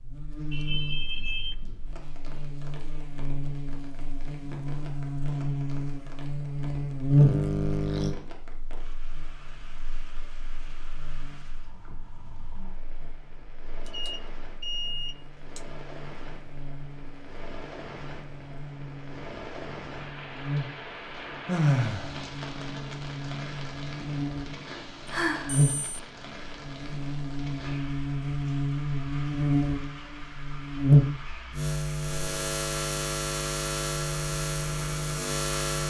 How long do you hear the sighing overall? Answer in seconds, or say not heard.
2 s.